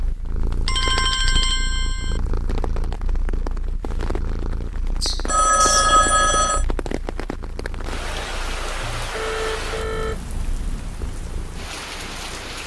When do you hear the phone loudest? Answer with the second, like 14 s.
6 s.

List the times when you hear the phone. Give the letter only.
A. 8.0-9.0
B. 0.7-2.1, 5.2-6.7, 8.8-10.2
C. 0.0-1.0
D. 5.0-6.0
B.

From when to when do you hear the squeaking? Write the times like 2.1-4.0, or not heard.
5.0-6.0.